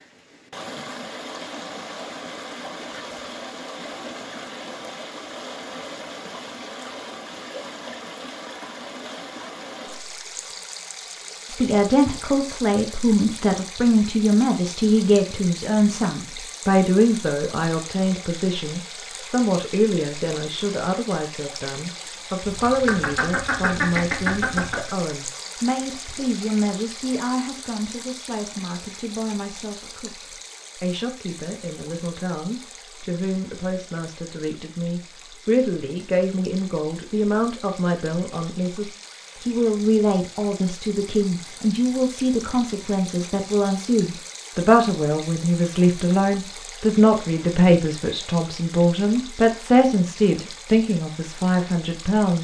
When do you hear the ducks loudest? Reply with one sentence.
The volume of the ducks peaks at 24 seconds.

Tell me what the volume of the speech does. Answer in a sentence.
The volume of the speech goes down, then up.